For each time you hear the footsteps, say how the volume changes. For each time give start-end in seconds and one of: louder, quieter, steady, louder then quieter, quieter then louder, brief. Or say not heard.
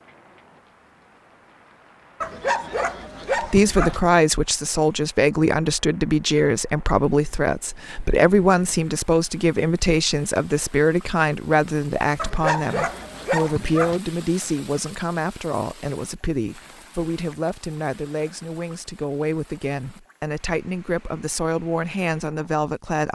not heard.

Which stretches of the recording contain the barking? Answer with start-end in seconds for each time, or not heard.
2.2-4.0, 12.2-14.0.